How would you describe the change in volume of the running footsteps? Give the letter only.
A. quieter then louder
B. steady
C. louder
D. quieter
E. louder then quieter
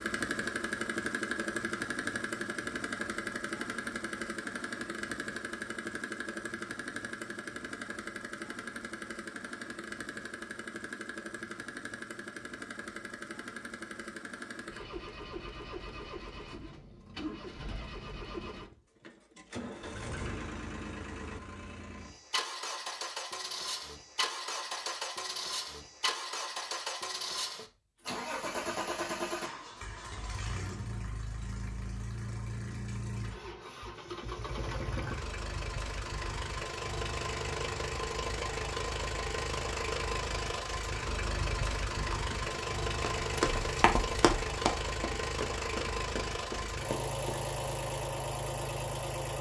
E.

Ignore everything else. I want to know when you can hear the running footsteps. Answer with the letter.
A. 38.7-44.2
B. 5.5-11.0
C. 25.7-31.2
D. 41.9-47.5
D.